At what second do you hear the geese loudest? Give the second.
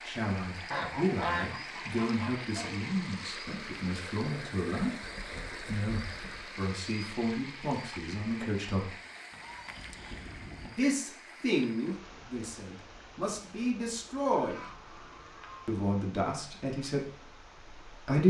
1 s.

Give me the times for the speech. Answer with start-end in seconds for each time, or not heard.
0.0-8.9, 10.6-14.6, 15.7-18.2.